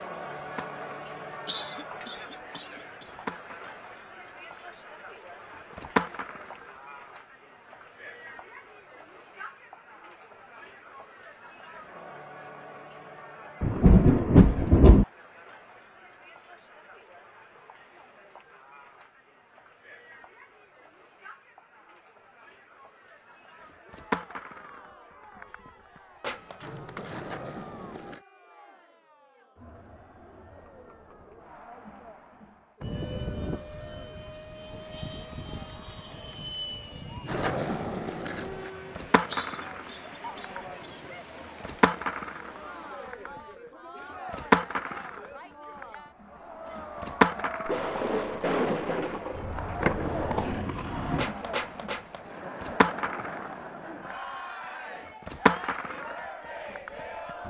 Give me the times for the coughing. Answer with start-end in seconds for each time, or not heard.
1.4-3.1, 39.2-41.0.